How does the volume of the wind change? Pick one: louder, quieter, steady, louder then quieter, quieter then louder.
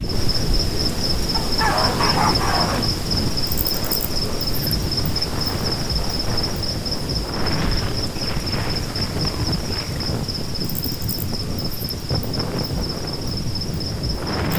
steady.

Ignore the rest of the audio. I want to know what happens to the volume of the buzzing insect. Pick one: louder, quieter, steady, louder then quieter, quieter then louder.
quieter.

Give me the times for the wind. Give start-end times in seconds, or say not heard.
0.0-14.5.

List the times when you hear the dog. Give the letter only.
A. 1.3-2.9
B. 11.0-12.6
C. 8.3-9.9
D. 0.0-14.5
A.